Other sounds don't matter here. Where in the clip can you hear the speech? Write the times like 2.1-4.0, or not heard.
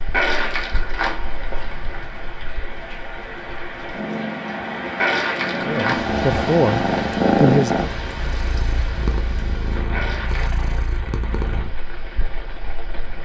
5.7-7.9.